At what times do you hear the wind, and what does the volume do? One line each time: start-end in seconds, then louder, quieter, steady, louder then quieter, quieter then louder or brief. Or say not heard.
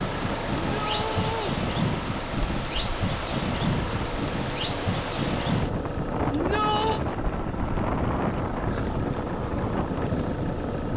0.0-10.9 steady.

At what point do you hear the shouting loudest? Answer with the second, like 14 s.
7 s.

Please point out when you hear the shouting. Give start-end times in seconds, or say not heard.
0.6-1.6, 6.3-7.0.